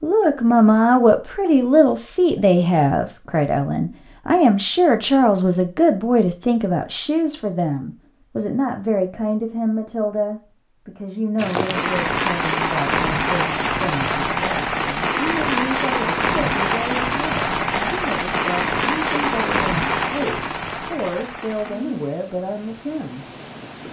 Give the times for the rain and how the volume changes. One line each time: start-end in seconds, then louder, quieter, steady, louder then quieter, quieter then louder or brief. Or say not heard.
11.3-23.8 quieter.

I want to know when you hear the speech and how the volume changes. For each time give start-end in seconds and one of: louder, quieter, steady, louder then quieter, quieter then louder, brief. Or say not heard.
0.0-23.8 quieter.